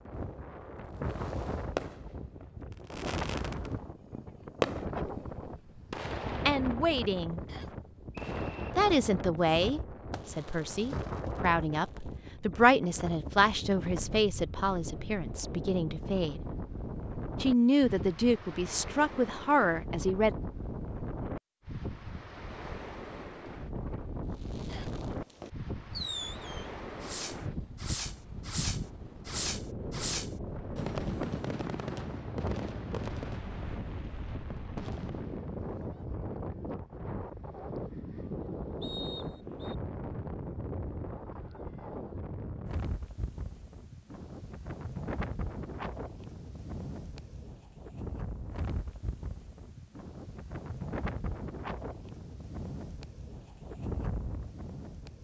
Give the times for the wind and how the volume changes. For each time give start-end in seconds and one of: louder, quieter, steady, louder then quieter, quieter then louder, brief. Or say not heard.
0.0-55.1 steady.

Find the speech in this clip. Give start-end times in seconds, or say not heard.
6.5-7.4, 8.8-16.4, 17.4-20.4.